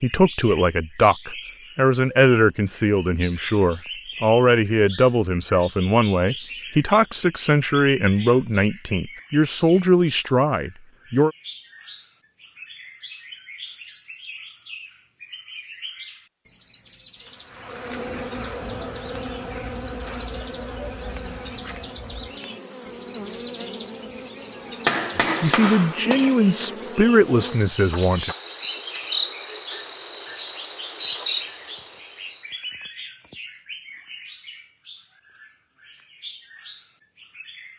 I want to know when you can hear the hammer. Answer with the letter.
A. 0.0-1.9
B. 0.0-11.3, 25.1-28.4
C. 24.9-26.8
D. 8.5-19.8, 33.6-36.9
C.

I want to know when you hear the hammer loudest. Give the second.
25 s.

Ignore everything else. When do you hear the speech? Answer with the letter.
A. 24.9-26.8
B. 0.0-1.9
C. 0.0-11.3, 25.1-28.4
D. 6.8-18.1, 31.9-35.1
C.